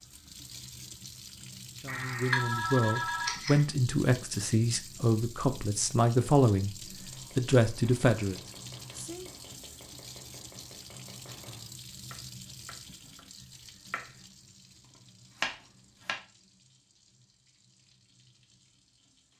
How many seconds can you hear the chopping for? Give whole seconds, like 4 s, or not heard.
9 s.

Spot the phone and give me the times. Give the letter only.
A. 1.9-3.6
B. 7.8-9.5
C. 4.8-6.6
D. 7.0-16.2
A.